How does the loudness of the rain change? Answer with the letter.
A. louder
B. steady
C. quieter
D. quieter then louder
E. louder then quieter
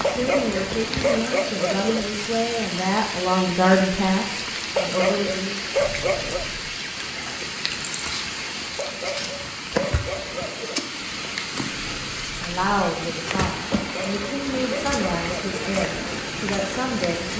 B.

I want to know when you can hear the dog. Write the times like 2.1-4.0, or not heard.
0.0-2.0, 4.8-6.5, 8.8-10.8, 13.7-15.7.